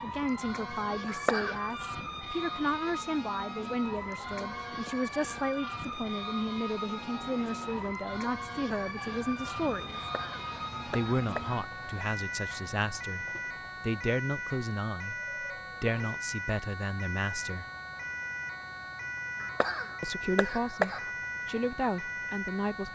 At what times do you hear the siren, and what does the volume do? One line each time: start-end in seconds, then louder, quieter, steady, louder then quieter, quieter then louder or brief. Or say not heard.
0.0-22.9 steady.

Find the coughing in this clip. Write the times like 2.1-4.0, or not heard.
1.1-1.6, 10.0-11.6, 19.4-21.1.